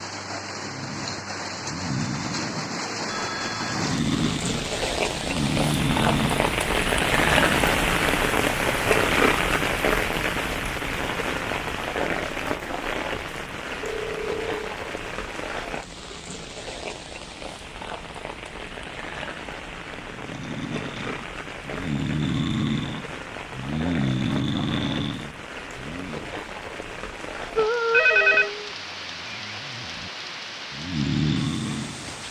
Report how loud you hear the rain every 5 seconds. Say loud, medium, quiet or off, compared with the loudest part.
medium, loud, medium, quiet, quiet, quiet, quiet.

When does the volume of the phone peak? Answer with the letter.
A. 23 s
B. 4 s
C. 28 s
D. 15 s
C.